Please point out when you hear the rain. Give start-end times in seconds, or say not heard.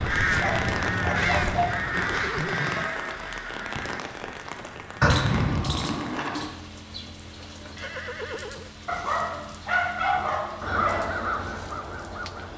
0.0-12.5.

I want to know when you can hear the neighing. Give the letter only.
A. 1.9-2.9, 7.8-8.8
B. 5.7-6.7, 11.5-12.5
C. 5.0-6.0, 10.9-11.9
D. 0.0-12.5
A.